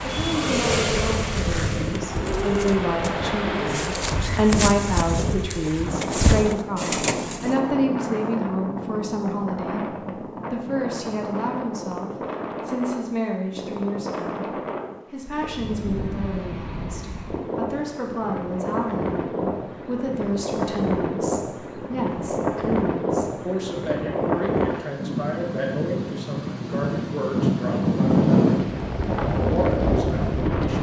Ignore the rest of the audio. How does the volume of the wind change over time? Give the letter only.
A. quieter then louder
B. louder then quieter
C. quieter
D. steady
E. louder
E.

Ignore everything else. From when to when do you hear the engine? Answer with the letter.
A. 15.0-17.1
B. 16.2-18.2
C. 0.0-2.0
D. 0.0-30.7
C.